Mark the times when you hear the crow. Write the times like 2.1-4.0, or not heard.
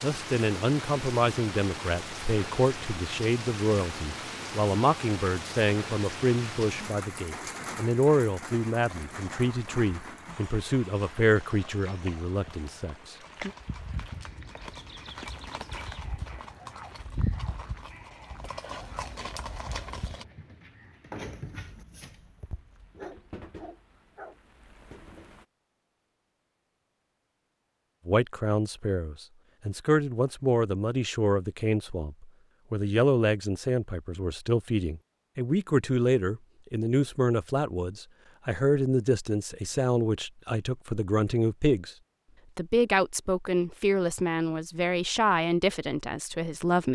not heard.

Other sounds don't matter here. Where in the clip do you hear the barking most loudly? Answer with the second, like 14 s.
21 s.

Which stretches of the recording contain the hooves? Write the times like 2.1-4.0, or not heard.
8.8-20.2.